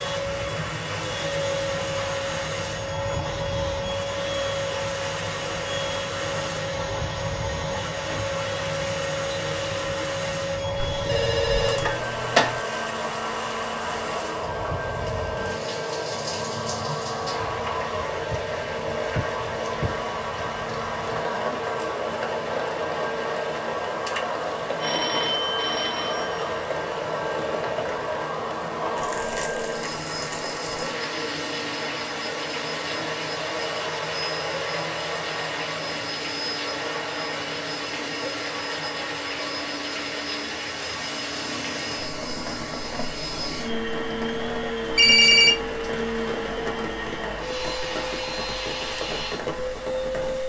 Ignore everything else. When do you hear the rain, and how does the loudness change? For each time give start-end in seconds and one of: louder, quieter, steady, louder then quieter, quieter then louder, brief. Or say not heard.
0.0-50.4 steady.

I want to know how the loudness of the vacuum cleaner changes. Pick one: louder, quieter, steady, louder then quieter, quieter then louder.
steady.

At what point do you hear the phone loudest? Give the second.
45 s.